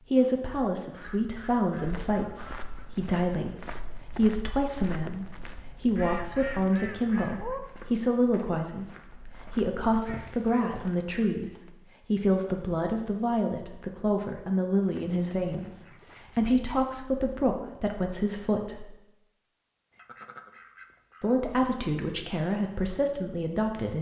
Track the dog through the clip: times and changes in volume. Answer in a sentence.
The dog can't be heard in this clip.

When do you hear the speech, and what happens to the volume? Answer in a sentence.
You can hear the speech from 0.0 to 18.9 s, at a steady volume; and briefly from 21.2 to 23.9 s.